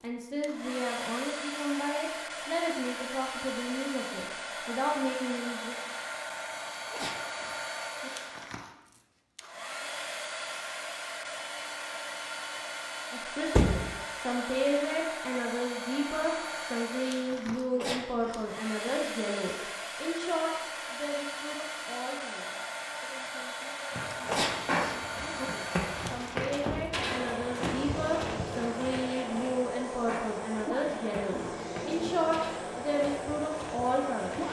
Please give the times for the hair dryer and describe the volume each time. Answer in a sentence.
The hair dryer can be heard from 0.0 to 34.4 s, at a steady volume.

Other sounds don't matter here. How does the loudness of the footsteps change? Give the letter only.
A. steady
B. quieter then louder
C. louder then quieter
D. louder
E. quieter
E.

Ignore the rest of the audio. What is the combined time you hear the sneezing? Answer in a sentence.
The sneezing can be heard for 4 seconds in total.